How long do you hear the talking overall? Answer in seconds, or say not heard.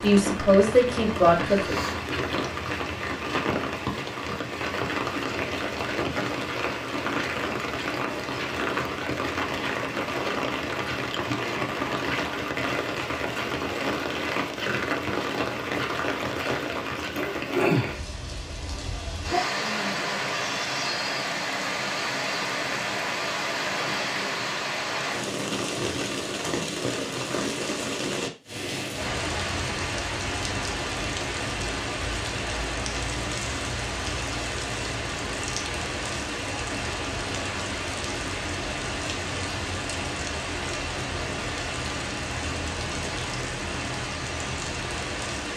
2 s.